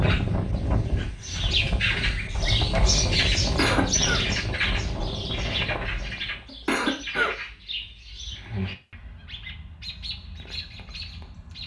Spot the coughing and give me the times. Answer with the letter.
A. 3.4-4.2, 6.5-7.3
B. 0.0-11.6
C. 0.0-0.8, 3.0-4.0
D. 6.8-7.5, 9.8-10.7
A.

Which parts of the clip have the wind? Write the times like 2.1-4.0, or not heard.
0.0-6.5.